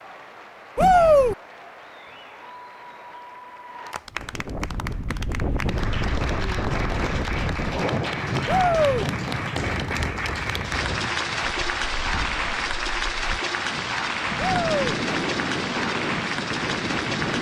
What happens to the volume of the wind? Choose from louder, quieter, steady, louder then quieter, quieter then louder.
quieter then louder.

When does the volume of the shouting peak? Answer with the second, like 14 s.
1 s.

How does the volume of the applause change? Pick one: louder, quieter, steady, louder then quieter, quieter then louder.
louder.